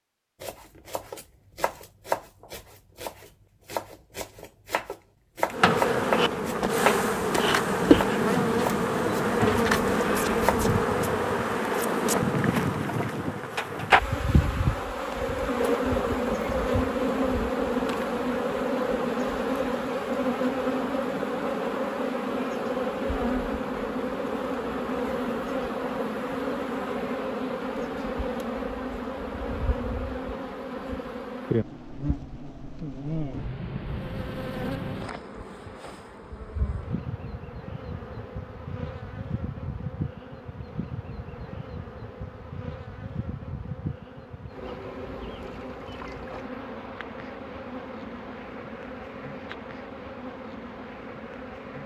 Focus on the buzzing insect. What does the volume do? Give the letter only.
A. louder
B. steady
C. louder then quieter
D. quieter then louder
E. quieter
E.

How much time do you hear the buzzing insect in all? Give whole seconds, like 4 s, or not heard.
46 s.